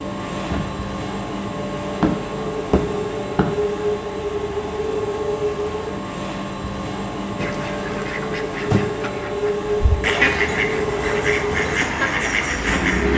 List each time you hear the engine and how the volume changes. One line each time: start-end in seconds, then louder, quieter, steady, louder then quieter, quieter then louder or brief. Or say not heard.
0.0-13.1 steady.